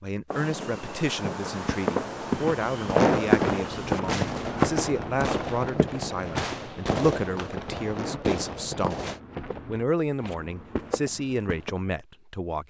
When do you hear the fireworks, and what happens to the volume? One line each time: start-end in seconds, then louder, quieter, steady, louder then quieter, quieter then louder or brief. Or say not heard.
0.3-9.2 steady.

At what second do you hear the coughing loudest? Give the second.
3 s.